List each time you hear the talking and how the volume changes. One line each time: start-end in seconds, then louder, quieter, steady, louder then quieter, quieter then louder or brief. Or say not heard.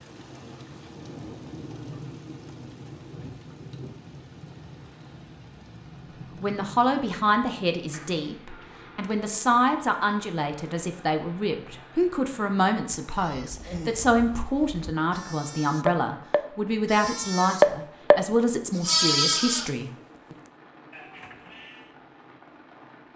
6.4-20.4 steady.